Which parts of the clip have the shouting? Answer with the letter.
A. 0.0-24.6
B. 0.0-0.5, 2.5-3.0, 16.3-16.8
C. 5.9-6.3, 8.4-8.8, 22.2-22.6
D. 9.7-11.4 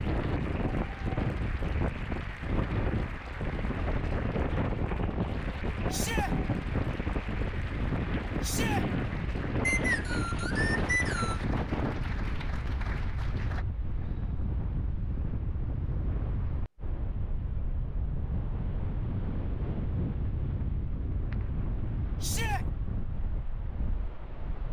C.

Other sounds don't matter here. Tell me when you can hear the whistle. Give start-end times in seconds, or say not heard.
9.7-11.4.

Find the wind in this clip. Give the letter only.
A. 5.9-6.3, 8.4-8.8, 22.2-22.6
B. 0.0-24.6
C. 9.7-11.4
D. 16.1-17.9
B.